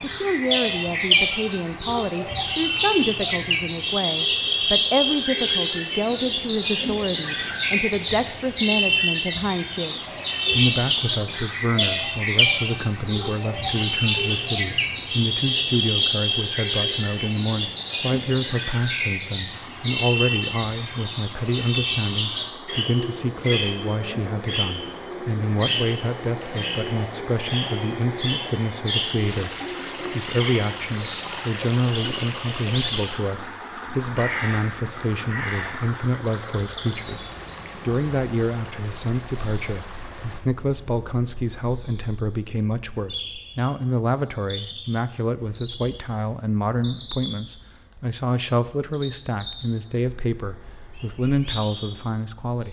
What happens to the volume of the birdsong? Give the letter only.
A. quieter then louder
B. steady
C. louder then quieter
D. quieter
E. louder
D.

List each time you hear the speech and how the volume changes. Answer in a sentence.
You can hear the speech from 0.0 to 52.6 s, at a steady volume.